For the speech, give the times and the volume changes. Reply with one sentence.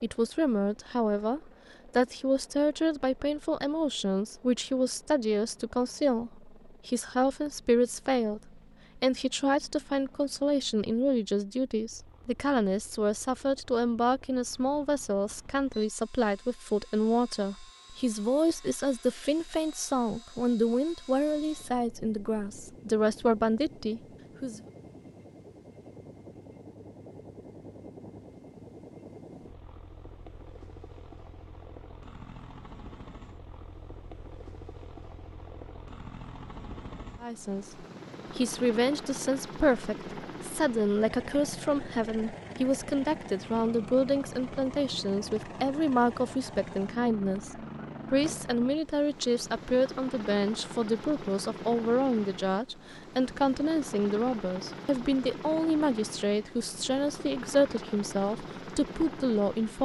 The speech can be heard from 0.0 to 24.6 s, at a steady volume; and from 37.2 to 59.8 s, at a steady volume.